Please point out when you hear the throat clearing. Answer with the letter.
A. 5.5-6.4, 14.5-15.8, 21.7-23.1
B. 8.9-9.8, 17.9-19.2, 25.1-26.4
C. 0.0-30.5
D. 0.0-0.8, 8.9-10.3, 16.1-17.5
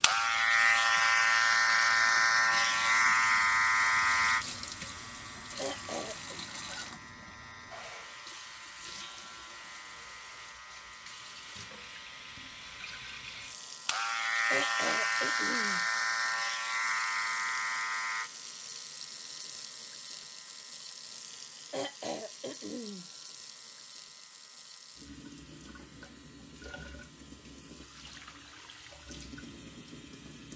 A.